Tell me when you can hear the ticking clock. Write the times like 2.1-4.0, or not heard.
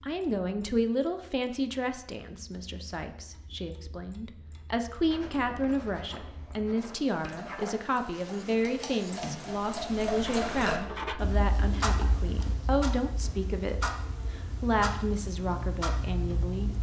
0.0-16.7.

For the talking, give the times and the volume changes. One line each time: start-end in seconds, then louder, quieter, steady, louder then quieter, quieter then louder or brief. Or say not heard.
0.0-16.7 steady.